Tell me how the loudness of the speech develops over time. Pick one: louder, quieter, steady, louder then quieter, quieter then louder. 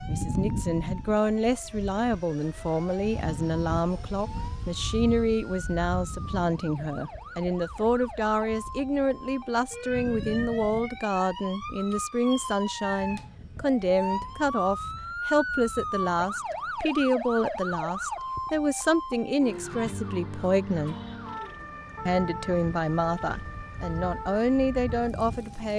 steady.